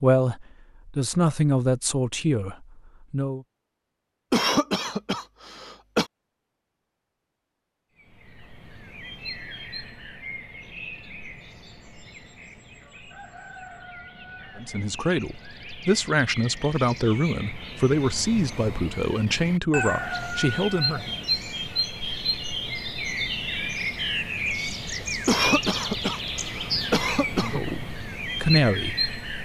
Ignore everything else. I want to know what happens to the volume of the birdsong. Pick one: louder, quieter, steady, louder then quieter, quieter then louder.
louder.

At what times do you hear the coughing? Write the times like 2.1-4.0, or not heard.
4.3-6.0, 25.2-27.6.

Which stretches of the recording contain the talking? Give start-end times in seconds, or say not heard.
0.0-3.5, 14.6-21.1, 27.4-29.1.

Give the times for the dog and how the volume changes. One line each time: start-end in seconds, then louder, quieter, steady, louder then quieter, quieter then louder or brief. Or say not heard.
not heard.